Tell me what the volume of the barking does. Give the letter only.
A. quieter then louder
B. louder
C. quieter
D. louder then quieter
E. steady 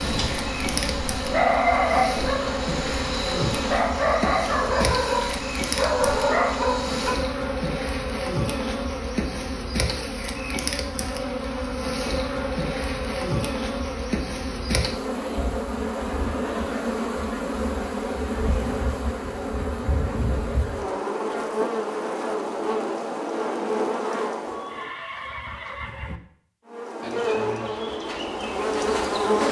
E.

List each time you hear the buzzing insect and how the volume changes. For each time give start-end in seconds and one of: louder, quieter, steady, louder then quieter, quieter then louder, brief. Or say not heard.
0.0-24.9 steady
26.6-29.4 brief.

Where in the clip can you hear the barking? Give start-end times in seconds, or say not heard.
0.0-7.2.